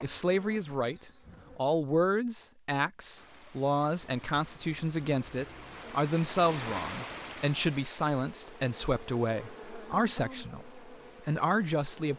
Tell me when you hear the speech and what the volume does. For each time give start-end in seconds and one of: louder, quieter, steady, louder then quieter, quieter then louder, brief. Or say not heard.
0.0-12.1 steady.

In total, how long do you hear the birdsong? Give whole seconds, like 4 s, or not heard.
not heard.